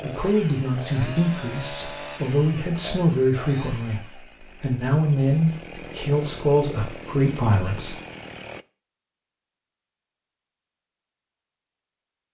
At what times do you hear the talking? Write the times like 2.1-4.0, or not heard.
0.0-8.0.